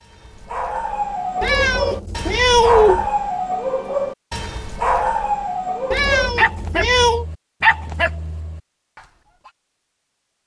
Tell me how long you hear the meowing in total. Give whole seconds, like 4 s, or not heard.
3 s.